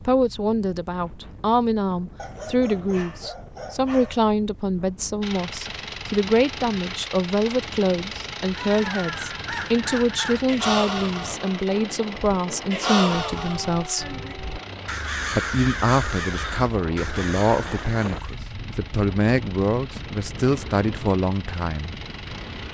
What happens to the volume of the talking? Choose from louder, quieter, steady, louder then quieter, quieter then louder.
steady.